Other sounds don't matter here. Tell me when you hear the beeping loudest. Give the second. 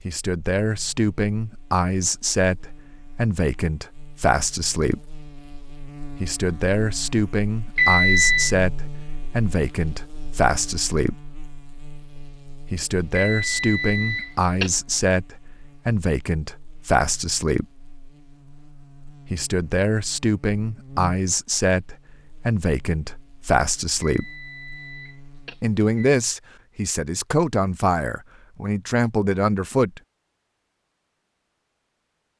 8 s.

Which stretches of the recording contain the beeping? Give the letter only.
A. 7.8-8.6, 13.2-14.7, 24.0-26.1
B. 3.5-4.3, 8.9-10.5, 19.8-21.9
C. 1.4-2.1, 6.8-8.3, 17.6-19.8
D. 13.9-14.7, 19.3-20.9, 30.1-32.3
A.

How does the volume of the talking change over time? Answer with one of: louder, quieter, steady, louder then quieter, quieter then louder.
steady.